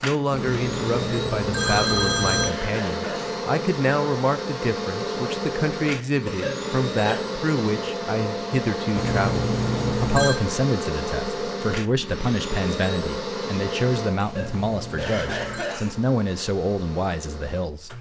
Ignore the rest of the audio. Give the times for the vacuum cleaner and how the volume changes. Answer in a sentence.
You can hear the vacuum cleaner from 0.0 to 17.9 s, getting quieter.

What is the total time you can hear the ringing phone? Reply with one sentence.
The ringing phone can be heard for 5 seconds in total.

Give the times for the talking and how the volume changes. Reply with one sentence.
You can hear the talking from 0.0 to 17.9 s, at a steady volume.